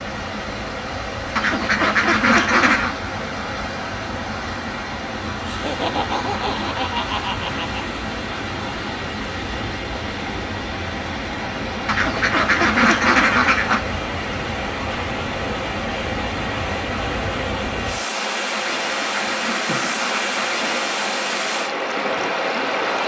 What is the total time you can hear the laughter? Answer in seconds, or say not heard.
3 s.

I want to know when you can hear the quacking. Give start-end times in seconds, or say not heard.
1.4-3.0, 11.8-13.8, 18.5-20.9.